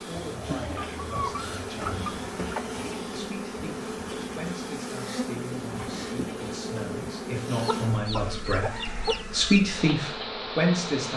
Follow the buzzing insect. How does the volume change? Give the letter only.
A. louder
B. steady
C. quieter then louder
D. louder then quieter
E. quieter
B.